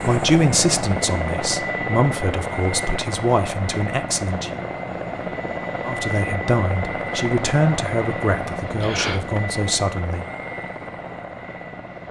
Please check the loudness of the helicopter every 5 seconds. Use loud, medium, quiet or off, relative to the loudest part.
loud, loud, medium.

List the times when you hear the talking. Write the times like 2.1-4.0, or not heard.
0.0-4.6, 5.8-10.2.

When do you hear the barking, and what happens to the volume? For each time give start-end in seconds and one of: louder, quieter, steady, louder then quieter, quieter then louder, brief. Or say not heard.
not heard.